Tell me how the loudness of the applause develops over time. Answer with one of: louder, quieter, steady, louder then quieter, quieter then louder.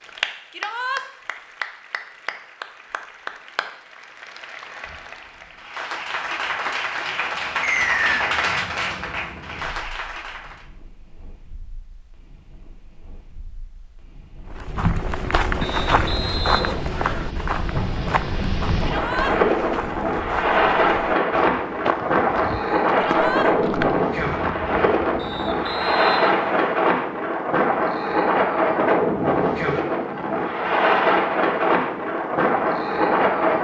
louder.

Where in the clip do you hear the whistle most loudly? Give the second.
8 s.